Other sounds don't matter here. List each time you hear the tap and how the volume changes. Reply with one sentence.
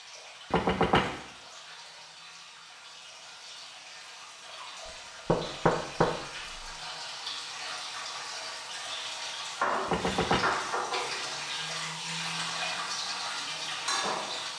The tap can be heard from 0.0 to 14.5 s, getting louder.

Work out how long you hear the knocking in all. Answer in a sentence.
You can hear the knocking for 3 seconds altogether.